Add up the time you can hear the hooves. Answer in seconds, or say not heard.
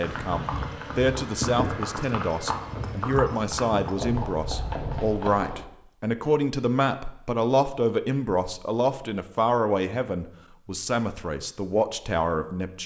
6 s.